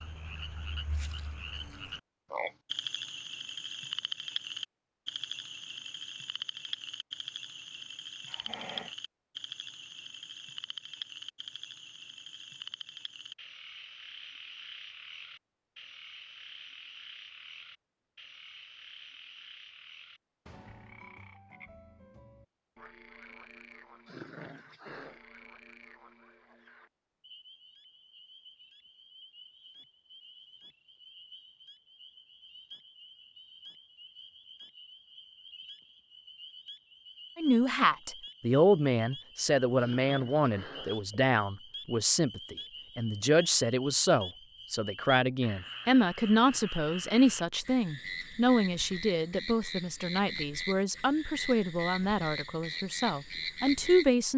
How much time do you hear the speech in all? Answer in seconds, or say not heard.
17 s.